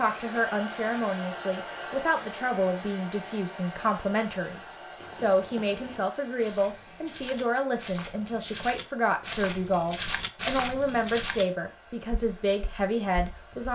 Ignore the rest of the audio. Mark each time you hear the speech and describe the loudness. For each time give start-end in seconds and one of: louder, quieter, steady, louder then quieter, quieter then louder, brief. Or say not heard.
0.0-13.6 steady.